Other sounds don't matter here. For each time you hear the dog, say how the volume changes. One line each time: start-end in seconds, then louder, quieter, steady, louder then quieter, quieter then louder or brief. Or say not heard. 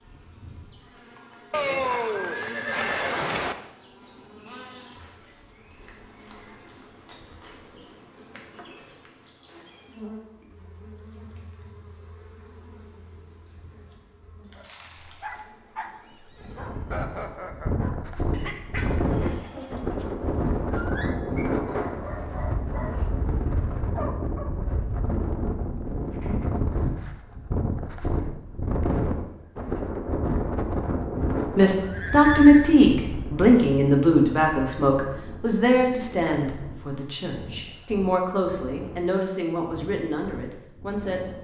14.6-24.6 steady.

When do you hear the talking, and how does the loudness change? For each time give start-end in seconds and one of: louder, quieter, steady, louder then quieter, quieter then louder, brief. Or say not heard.
31.6-41.3 quieter.